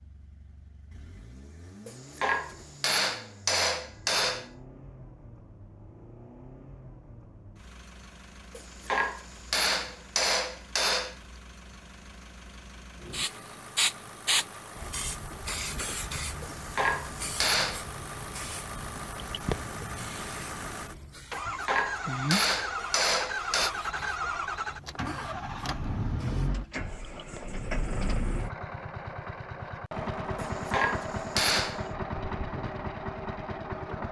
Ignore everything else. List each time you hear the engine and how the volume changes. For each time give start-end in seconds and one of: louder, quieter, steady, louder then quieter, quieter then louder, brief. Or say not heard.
0.0-34.0 louder.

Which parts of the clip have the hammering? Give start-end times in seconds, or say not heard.
1.9-4.5, 8.6-11.2, 16.4-17.9, 21.3-23.7, 30.4-31.9.